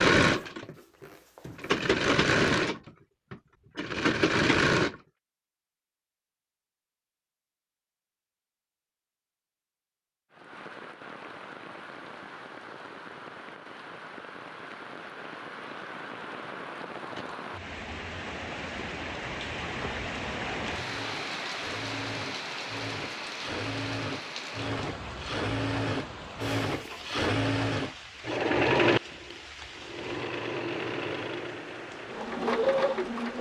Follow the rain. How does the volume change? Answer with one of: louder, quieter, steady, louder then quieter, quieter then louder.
louder then quieter.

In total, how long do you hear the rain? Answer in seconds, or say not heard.
23 s.